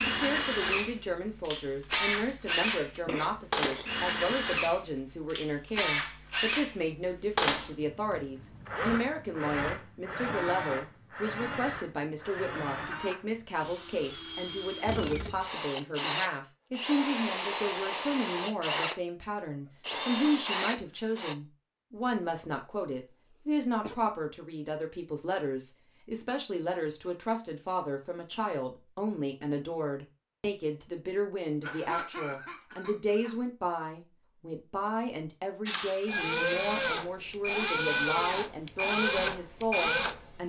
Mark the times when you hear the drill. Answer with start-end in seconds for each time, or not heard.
0.0-21.4, 35.6-40.4.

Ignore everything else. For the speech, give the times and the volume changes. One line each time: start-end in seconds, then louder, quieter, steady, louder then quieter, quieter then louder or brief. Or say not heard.
0.0-40.4 steady.